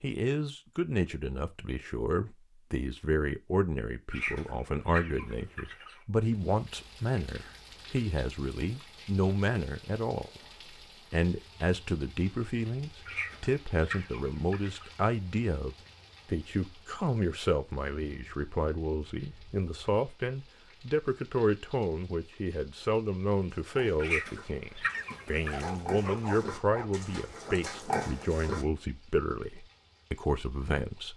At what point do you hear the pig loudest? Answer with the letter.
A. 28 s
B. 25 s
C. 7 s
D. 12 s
A.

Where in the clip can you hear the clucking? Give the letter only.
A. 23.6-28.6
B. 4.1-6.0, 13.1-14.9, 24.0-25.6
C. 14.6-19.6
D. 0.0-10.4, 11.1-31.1
B.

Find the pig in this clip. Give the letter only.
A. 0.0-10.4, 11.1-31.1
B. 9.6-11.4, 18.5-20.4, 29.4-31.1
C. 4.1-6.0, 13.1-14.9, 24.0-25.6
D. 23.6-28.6
D.